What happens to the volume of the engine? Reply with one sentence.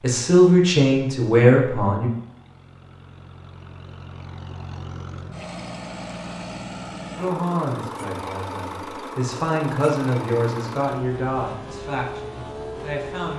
The loudness of the engine goes up.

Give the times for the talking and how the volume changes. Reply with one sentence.
You can hear the talking briefly from 0.0 to 2.1 s; and from 7.2 to 13.3 s, getting louder then quieter.